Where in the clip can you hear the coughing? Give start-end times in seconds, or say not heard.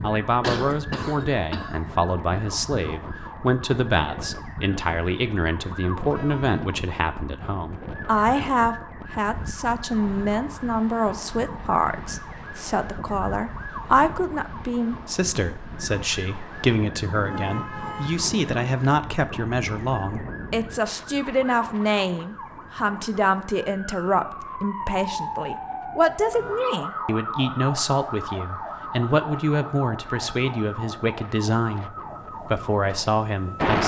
0.4-1.8.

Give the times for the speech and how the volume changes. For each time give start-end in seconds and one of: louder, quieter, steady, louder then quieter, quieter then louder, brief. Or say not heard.
0.0-33.8 steady.